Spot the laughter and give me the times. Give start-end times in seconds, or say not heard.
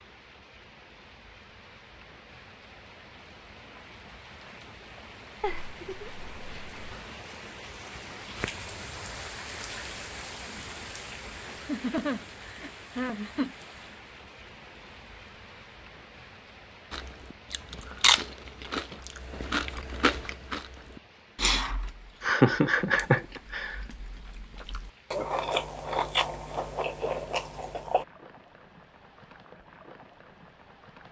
5.4-6.8, 11.7-13.6, 22.2-23.8.